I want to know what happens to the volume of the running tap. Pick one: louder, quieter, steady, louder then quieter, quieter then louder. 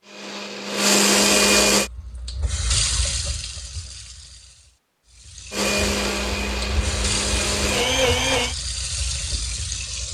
quieter then louder.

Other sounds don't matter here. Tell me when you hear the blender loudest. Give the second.
1 s.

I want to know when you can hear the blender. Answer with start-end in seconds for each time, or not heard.
0.0-1.9, 5.5-8.6.